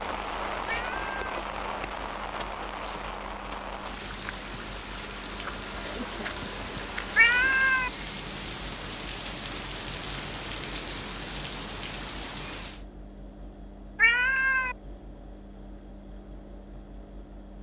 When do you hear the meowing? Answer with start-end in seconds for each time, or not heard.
0.7-1.1, 7.2-7.9, 13.9-14.8.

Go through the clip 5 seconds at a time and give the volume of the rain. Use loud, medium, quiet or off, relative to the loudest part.
loud, loud, loud, off.